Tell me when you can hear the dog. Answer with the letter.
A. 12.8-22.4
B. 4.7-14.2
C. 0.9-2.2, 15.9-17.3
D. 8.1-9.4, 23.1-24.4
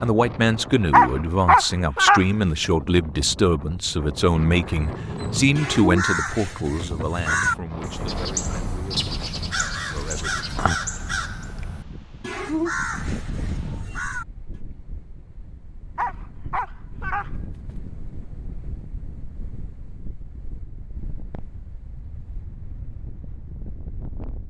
C.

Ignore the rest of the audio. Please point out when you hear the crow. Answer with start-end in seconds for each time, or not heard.
4.7-14.2.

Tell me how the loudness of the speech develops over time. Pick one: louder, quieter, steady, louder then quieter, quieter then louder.
quieter.